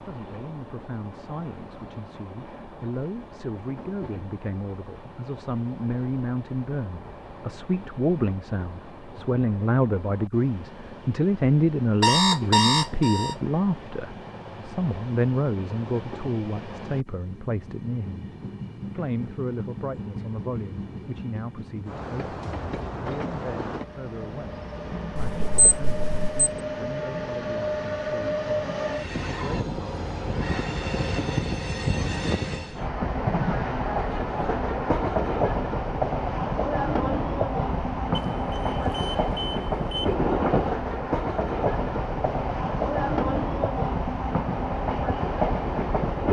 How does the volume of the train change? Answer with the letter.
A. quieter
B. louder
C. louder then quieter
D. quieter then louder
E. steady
B.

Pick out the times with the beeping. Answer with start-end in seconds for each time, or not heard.
12.0-13.3, 25.1-26.4, 38.1-40.1.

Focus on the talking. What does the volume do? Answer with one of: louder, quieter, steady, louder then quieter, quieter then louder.
louder then quieter.